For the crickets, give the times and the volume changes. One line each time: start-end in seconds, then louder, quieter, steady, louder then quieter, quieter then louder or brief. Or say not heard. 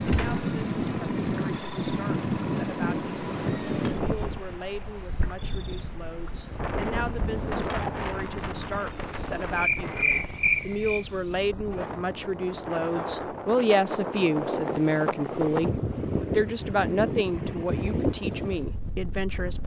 0.0-13.7 louder.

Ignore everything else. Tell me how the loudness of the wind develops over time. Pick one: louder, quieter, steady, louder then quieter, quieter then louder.
quieter then louder.